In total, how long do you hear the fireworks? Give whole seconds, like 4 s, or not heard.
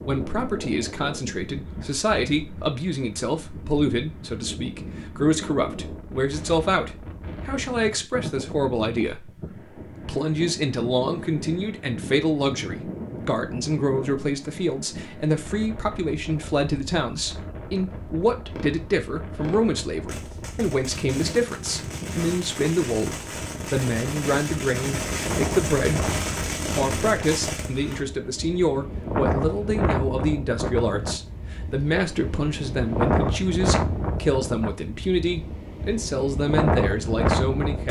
10 s.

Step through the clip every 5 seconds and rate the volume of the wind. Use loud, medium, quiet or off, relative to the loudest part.
medium, medium, medium, quiet, medium, loud, loud, loud.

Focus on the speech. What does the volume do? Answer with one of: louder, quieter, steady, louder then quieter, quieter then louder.
steady.